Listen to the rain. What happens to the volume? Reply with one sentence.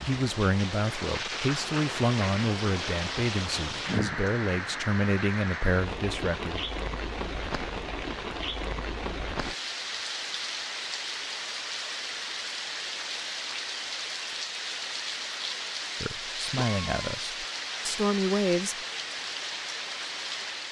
The loudness of the rain stays about the same.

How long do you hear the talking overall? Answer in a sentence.
You can hear the talking for 9 seconds altogether.